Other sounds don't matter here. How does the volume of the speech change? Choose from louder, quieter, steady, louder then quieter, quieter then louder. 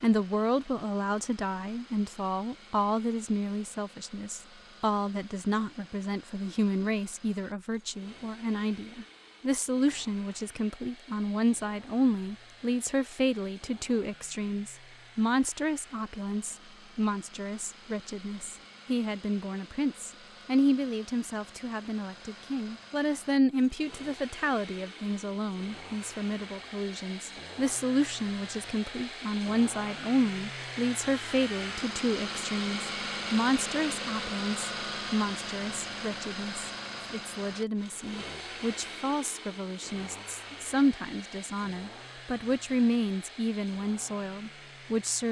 steady.